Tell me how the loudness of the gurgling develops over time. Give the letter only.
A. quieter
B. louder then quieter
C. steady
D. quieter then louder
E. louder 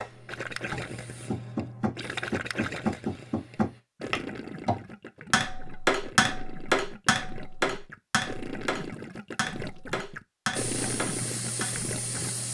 D.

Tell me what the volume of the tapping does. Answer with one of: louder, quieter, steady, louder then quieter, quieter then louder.
louder then quieter.